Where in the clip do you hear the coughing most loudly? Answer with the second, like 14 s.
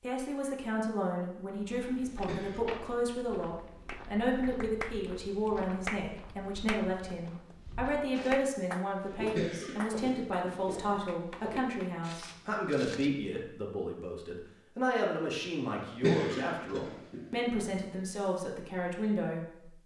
16 s.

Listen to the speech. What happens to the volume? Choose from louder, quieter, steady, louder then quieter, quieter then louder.
steady.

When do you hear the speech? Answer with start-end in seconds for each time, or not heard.
0.0-19.6.